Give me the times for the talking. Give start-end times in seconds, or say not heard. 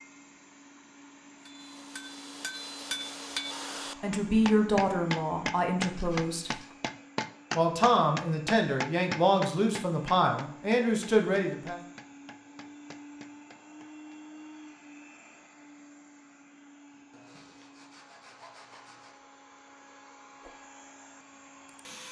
4.0-6.5, 7.5-11.8.